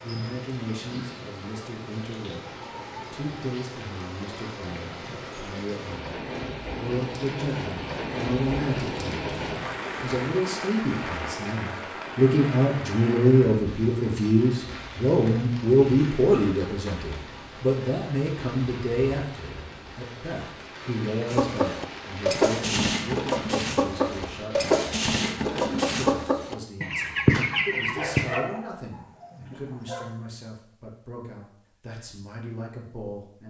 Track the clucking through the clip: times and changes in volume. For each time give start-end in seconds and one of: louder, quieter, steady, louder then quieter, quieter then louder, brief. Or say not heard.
21.2-28.4 steady.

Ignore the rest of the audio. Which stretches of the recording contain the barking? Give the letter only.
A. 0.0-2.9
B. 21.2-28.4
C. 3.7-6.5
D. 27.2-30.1
D.